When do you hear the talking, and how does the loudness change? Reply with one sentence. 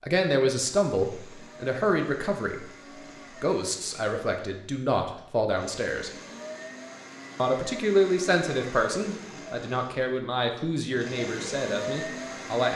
You can hear the talking briefly from 0.0 to 2.6 s; briefly from 3.4 to 6.1 s; and from 7.3 to 12.7 s, getting quieter.